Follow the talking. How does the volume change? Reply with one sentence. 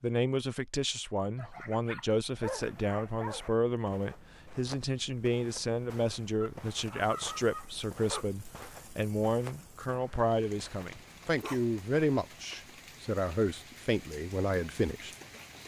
The volume of the talking stays about the same.